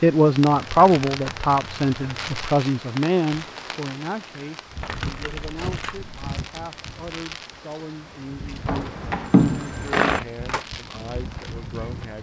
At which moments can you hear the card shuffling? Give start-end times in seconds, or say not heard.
0.5-2.5, 4.8-6.2, 8.7-10.2.